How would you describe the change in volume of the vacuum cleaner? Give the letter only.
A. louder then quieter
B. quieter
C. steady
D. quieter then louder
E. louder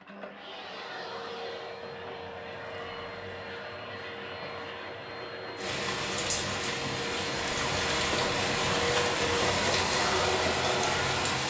E.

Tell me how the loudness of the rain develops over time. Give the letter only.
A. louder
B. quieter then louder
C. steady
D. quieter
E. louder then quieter
C.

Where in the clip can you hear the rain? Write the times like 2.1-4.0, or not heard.
5.5-11.4.